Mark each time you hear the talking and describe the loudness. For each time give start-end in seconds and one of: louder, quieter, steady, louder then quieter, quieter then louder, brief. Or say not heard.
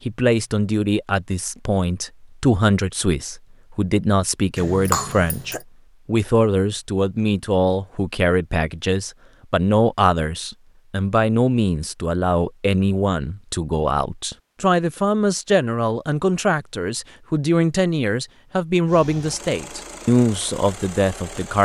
0.1-21.6 steady.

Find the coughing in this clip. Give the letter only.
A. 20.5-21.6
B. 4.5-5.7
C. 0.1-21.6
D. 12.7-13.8
B.